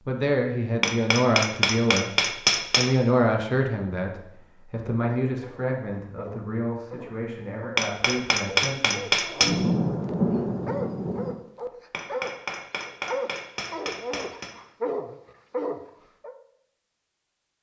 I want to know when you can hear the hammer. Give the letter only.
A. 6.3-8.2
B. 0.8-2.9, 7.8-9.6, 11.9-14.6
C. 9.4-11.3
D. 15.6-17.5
B.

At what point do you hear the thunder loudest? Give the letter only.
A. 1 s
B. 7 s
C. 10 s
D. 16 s
C.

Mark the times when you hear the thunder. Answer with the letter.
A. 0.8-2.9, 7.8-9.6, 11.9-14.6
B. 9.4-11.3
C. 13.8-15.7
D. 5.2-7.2
B.